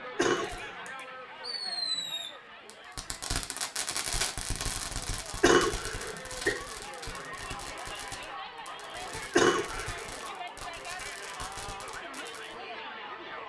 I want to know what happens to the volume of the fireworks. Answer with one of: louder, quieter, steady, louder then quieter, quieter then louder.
quieter.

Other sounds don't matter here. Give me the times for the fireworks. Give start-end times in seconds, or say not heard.
0.3-12.6.